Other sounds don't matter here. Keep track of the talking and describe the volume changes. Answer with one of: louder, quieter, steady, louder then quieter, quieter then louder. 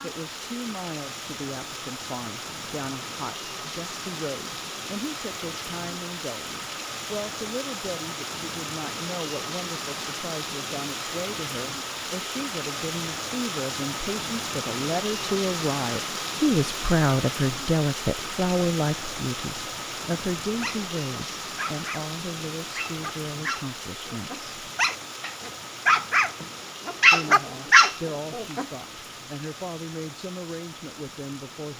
louder then quieter.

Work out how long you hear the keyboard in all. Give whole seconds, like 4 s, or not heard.
not heard.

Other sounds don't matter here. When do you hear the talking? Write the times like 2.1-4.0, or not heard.
0.0-24.4, 27.1-31.7.